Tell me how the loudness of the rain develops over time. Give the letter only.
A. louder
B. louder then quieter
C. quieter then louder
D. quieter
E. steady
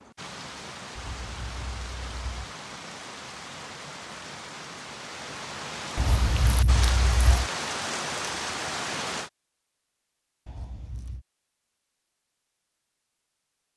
A.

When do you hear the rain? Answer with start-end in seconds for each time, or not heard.
0.0-9.3.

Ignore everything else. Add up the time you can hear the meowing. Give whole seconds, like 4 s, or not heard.
4 s.